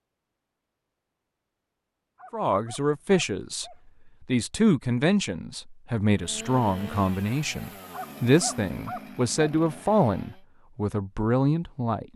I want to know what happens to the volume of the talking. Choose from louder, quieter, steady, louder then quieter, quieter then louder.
steady.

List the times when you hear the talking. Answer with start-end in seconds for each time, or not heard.
2.3-12.1.